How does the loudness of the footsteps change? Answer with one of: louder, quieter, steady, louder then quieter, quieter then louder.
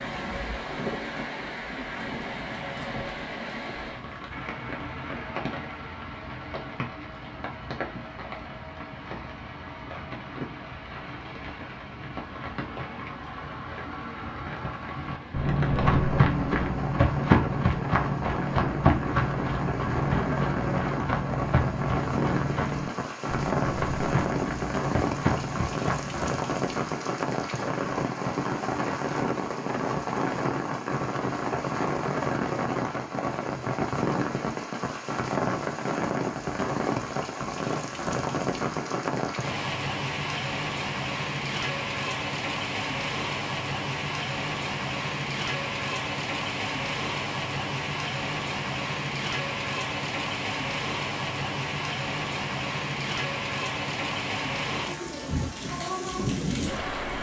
quieter.